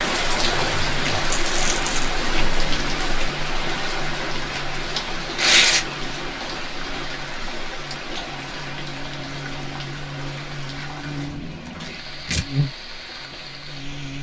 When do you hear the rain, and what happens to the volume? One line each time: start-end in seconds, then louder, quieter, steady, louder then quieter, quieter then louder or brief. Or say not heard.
0.0-14.1 quieter.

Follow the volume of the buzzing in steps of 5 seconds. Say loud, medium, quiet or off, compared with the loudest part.
medium, medium, loud.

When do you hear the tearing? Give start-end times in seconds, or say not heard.
1.3-2.1, 5.3-5.8, 11.8-12.4.